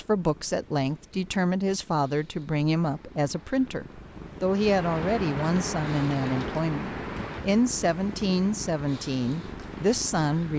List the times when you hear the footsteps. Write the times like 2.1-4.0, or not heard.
not heard.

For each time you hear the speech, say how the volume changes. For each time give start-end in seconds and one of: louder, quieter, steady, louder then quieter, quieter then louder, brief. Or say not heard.
0.0-10.5 steady.